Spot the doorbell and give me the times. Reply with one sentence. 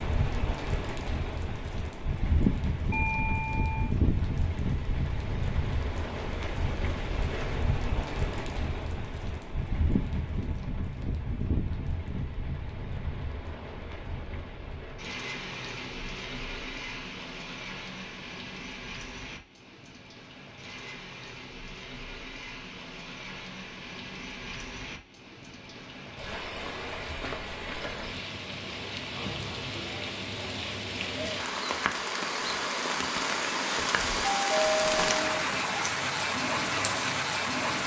The doorbell can be heard from 2.9 to 4.0 s and from 34.2 to 35.4 s.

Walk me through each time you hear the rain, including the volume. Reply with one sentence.
The rain can be heard from 0.0 to 37.8 s, getting quieter then louder.